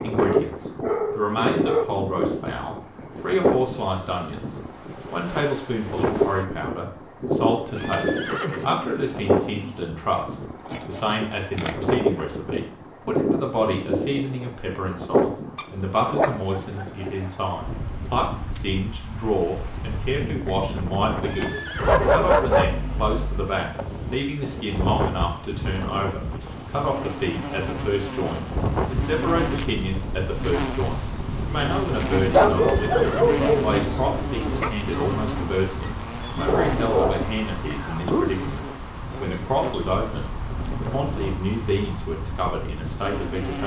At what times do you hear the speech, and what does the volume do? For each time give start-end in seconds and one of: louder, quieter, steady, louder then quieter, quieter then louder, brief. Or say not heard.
0.0-43.6 steady.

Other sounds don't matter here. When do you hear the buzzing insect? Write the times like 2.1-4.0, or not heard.
3.1-6.5, 26.4-43.6.